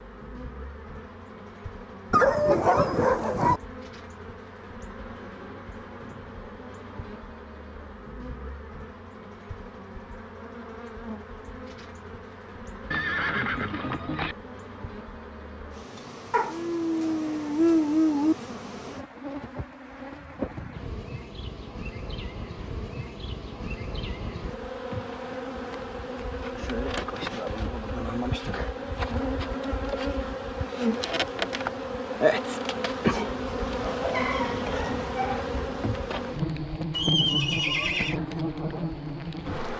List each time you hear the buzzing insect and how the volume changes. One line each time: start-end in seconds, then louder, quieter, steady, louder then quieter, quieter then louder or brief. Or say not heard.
0.0-39.7 louder.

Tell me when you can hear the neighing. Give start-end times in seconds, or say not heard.
12.9-14.3, 36.9-38.2.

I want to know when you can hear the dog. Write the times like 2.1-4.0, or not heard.
2.1-3.6, 16.3-18.4, 33.8-35.5.